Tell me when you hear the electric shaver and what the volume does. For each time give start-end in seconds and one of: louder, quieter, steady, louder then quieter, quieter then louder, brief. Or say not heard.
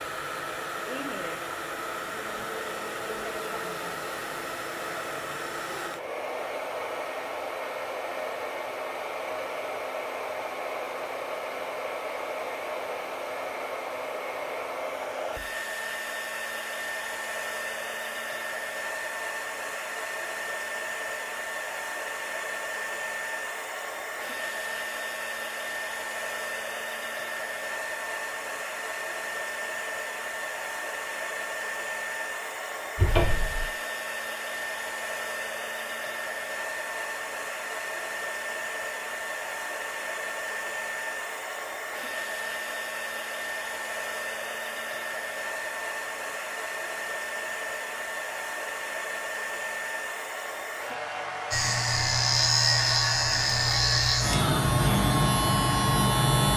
51.5-56.5 steady.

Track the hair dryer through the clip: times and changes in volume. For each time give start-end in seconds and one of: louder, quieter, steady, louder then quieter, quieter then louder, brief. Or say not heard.
0.0-56.5 steady.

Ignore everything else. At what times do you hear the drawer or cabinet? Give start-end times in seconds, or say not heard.
33.0-33.6.